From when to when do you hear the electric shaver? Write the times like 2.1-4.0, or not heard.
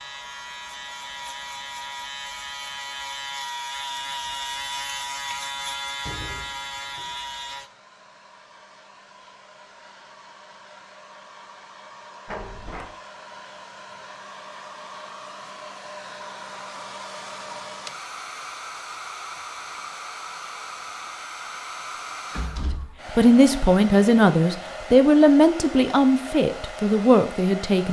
0.0-7.7.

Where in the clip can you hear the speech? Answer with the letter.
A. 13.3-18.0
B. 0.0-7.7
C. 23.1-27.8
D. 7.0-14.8
C.